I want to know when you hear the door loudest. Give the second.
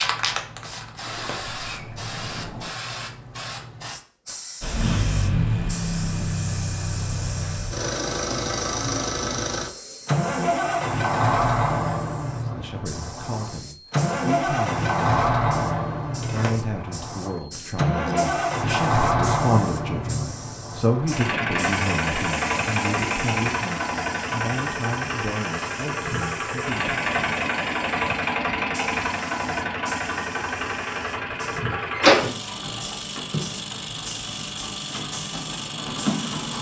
32 s.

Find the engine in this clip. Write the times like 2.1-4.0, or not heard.
4.6-36.5.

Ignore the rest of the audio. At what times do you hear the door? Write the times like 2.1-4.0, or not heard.
1.1-2.7, 16.2-16.8, 31.9-32.5.